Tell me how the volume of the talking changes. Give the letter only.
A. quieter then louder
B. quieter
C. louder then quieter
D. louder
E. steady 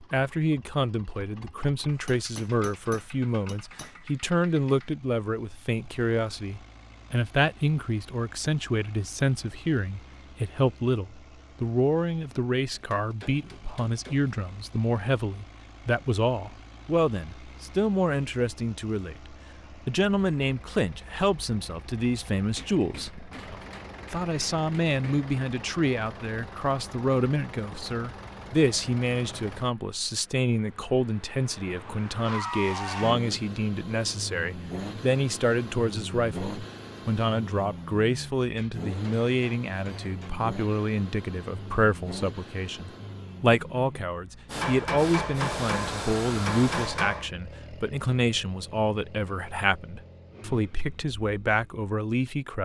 E.